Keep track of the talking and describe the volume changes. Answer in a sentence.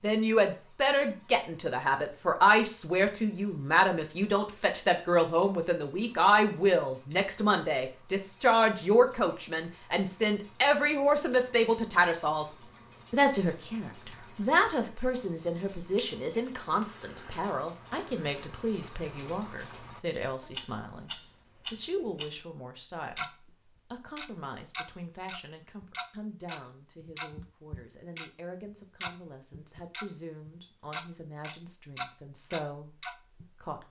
The volume of the talking goes down.